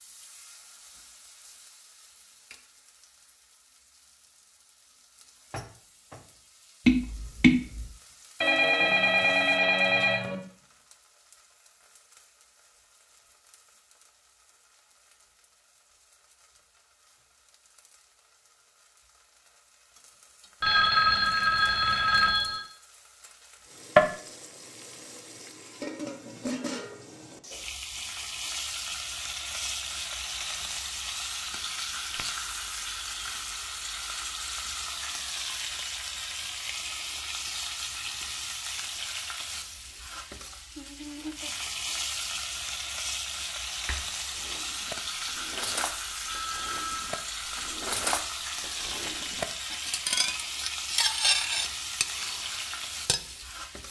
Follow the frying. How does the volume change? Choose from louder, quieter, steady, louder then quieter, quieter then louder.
quieter then louder.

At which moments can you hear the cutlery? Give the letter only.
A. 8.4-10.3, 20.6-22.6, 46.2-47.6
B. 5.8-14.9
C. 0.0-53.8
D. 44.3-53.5
D.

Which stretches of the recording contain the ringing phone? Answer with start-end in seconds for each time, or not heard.
8.4-10.3, 20.6-22.6, 46.2-47.6.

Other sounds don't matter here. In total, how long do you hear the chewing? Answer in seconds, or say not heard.
not heard.